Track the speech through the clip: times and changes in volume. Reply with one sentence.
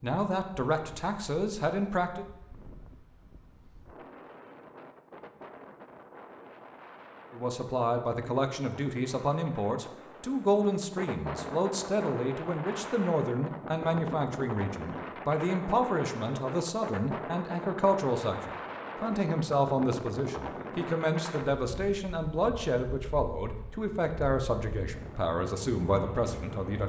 The speech can be heard briefly from 0.0 to 2.2 s; and from 7.3 to 26.8 s, at a steady volume.